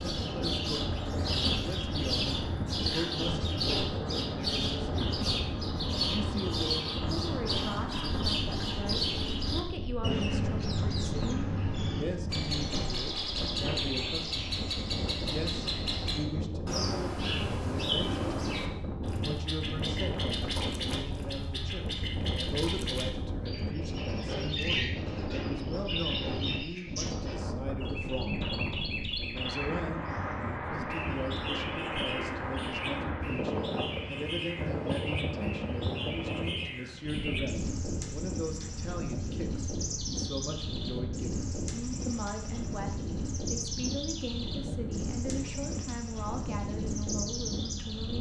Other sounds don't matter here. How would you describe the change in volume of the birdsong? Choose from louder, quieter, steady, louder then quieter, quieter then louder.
quieter.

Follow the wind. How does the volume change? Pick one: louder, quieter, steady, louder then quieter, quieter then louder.
steady.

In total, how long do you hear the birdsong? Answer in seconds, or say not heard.
48 s.